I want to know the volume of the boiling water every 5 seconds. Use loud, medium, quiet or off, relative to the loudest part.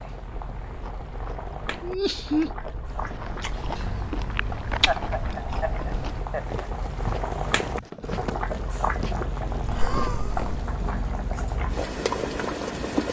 medium, loud, loud.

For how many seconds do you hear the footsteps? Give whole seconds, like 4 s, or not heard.
8 s.